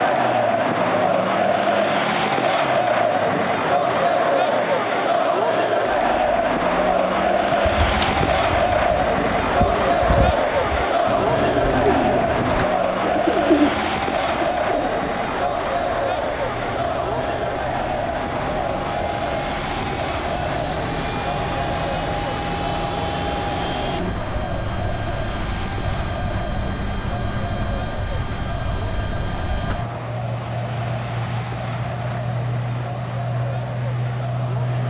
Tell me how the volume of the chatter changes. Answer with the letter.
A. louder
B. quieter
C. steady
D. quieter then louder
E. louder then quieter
B.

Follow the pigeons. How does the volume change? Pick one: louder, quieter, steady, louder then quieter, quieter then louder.
louder.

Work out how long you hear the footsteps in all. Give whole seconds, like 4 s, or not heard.
not heard.